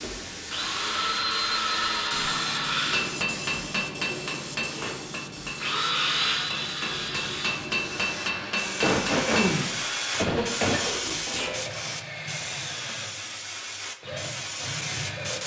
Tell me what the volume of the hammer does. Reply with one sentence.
The loudness of the hammer goes down, then up.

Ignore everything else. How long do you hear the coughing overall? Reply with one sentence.
The coughing can be heard for 2 seconds in total.